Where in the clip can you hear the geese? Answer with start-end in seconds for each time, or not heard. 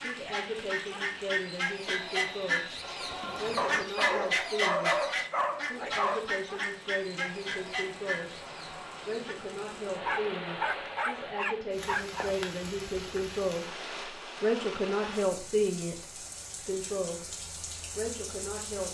0.0-9.3.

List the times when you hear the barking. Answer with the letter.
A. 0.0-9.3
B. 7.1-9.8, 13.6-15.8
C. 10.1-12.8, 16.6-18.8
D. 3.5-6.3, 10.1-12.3
D.